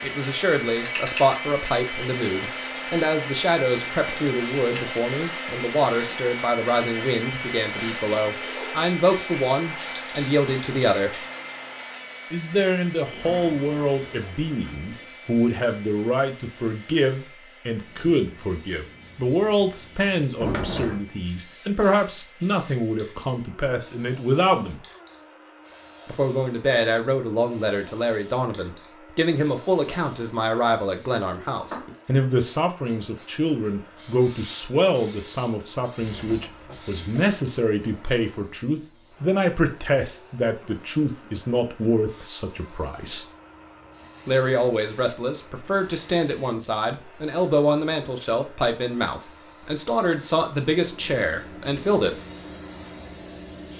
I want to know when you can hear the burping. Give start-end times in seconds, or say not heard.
not heard.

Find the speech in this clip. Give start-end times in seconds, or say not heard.
0.0-11.1, 12.3-24.9, 26.1-43.2, 44.2-52.1.